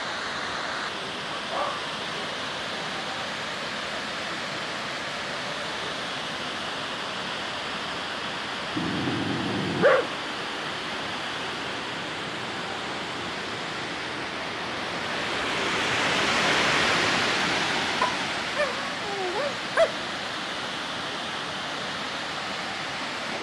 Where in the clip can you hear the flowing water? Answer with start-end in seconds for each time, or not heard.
0.0-23.3.